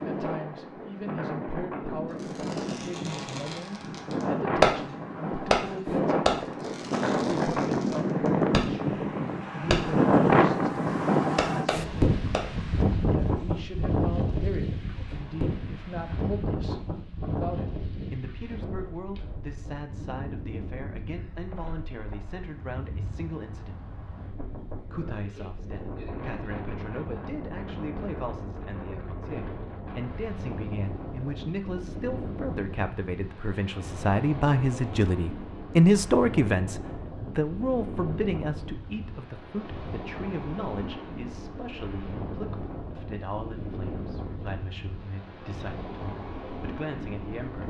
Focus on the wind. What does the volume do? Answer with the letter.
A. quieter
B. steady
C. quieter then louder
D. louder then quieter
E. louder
A.